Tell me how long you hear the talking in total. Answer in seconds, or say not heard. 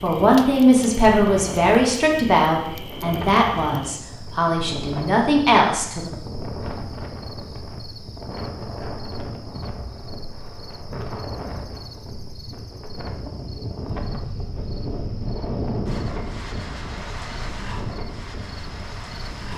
6 s.